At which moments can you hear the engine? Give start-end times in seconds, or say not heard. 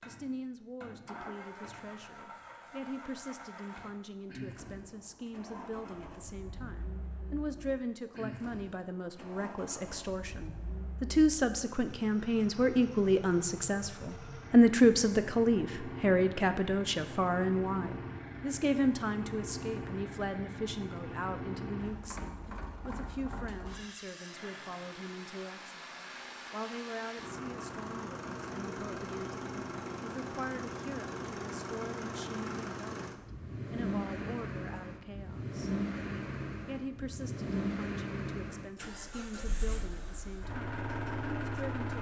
0.0-41.9.